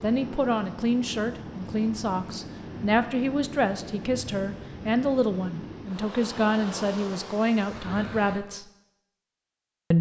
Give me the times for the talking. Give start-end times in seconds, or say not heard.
0.0-8.7.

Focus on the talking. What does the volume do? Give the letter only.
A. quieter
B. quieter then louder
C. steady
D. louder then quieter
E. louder
C.